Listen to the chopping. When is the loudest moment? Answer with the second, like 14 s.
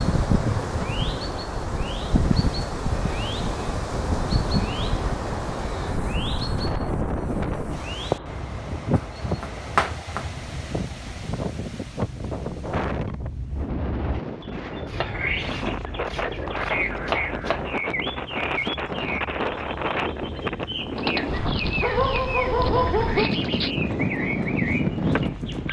10 s.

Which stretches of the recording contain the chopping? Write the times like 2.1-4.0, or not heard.
8.9-10.2, 14.8-17.8.